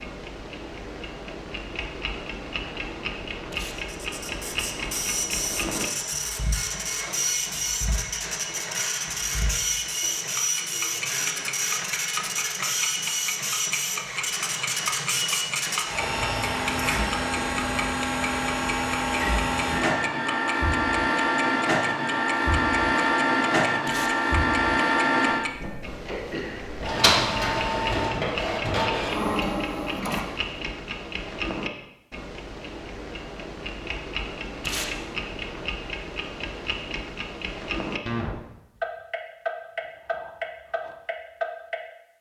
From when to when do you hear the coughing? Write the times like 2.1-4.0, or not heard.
26.1-26.7.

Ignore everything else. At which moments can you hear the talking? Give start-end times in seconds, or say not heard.
not heard.